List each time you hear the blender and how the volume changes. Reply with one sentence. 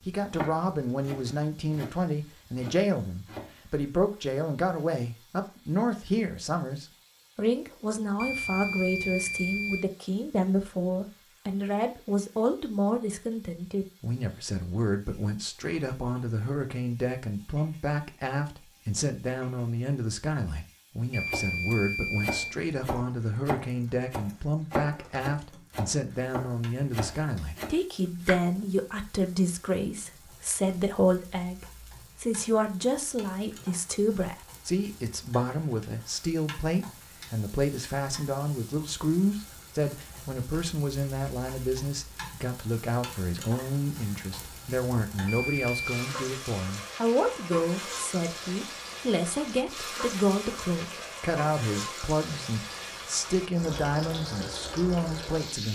You can't hear the blender here.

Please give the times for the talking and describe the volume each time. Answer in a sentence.
The talking can be heard from 0.1 to 55.7 s, at a steady volume.